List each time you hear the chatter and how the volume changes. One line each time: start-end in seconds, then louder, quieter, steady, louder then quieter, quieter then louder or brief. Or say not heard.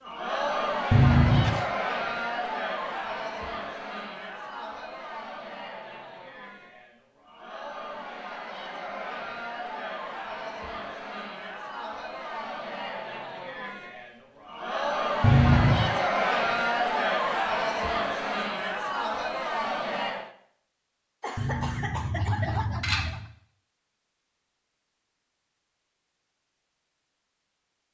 0.0-20.3 quieter then louder.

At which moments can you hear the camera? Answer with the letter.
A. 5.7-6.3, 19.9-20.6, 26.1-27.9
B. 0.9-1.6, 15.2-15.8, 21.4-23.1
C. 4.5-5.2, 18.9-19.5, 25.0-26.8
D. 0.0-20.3
B.